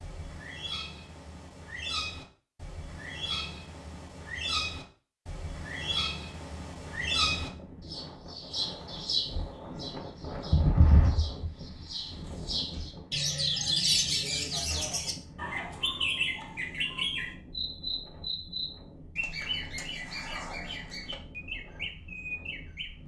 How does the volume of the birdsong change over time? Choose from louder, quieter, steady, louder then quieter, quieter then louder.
louder then quieter.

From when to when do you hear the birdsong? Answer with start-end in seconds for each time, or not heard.
0.0-23.0.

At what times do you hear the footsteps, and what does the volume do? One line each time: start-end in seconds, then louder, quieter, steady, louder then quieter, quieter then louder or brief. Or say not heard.
not heard.